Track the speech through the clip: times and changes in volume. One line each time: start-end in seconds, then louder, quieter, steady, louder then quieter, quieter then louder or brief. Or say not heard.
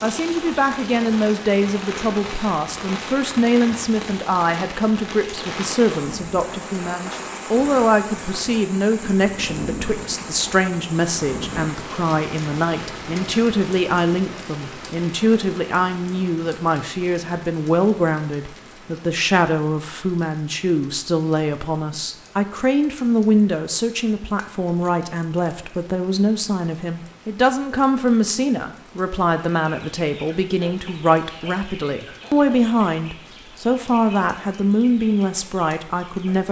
0.0-36.4 steady.